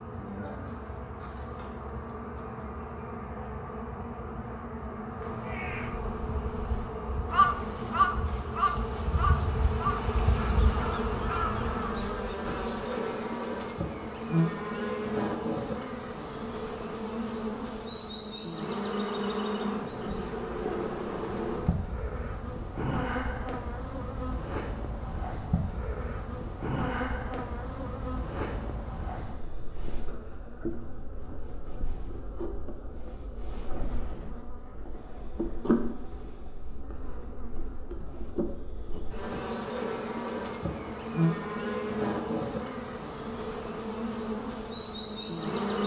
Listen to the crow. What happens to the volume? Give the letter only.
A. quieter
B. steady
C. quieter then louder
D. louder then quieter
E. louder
D.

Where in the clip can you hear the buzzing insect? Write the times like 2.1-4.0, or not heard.
0.0-45.8.